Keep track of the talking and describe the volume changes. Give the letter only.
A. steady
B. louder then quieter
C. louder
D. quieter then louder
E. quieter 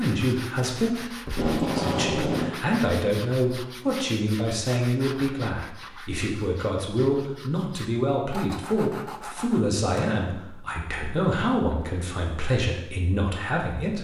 A.